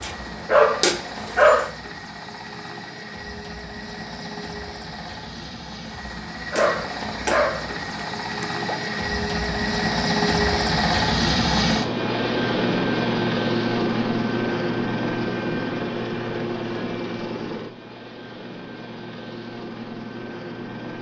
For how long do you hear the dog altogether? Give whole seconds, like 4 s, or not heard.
4 s.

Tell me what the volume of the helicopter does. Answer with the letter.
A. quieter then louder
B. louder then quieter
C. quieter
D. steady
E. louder
B.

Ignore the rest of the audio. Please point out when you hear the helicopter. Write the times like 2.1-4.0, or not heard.
0.0-20.9.